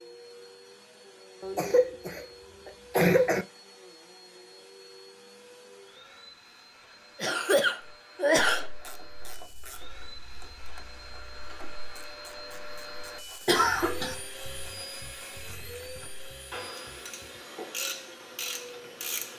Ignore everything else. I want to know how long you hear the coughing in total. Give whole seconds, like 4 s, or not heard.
4 s.